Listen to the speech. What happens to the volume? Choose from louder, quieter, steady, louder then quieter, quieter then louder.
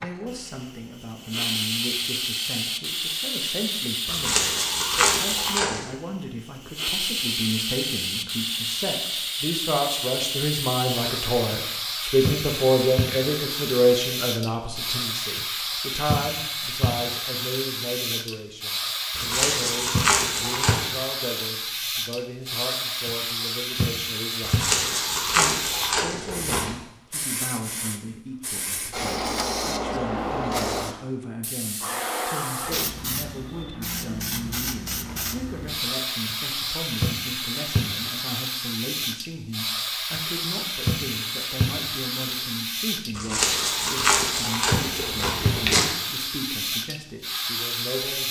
louder then quieter.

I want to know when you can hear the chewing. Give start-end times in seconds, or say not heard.
4.0-6.0, 19.1-20.9, 24.4-26.8, 43.1-45.9.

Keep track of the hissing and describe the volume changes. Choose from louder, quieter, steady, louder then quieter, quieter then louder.
steady.